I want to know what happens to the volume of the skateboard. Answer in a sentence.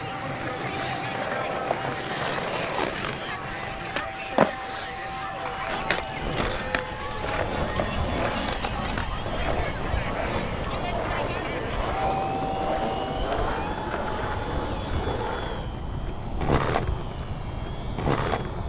The volume of the skateboard stays about the same.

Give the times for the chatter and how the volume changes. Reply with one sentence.
The chatter can be heard from 0.0 to 12.1 s, at a steady volume.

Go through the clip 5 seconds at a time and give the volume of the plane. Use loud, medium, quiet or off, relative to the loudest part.
medium, loud, loud, loud.